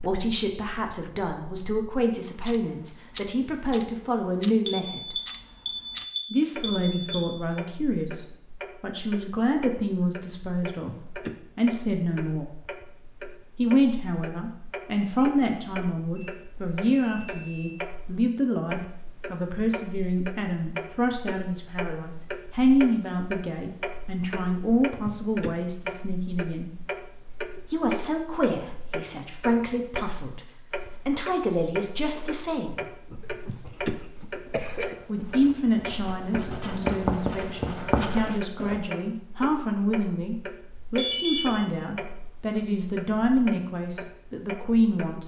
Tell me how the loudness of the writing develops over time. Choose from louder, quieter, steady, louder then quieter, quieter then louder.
louder.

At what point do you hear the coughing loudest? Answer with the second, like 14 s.
34 s.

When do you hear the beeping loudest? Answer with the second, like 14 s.
41 s.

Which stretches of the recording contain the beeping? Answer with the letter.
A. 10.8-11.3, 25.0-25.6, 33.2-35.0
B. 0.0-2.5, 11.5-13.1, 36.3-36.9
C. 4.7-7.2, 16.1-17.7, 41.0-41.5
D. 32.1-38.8
C.